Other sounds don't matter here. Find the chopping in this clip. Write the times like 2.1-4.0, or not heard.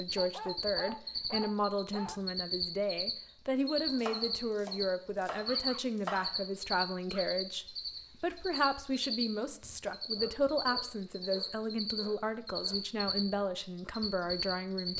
3.9-6.4.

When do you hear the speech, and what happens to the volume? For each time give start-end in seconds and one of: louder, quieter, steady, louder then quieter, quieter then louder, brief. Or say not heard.
0.0-14.9 steady.